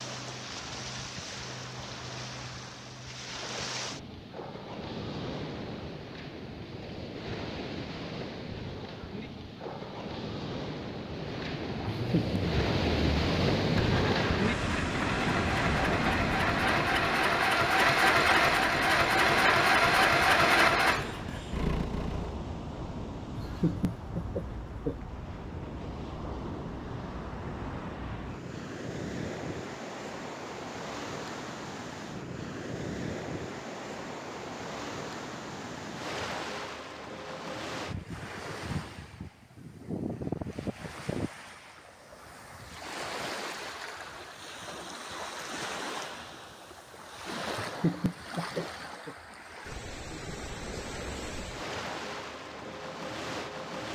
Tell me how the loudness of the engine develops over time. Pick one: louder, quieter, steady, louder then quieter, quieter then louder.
louder.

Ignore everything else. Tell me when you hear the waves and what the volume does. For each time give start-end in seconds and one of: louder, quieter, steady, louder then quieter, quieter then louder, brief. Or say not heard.
0.0-53.8 louder then quieter.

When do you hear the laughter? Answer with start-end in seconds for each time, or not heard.
11.9-12.4, 23.4-24.9, 47.5-49.1.